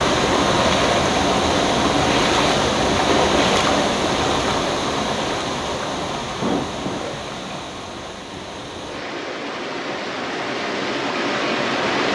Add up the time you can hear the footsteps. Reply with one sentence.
The footsteps can't be heard in this clip.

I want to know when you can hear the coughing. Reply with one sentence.
The coughing can be heard from 6.4 to 7.6 s.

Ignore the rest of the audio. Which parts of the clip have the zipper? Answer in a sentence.
The zipper can't be heard in this clip.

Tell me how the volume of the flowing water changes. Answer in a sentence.
The loudness of the flowing water goes down, then up.